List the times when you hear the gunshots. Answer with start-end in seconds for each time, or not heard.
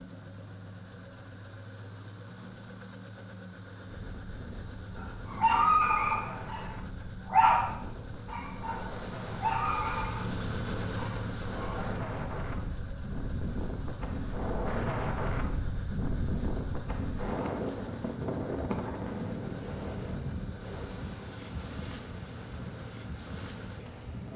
not heard.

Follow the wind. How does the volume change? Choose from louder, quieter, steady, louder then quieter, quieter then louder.
louder then quieter.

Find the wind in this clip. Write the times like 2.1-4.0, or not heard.
3.9-24.3.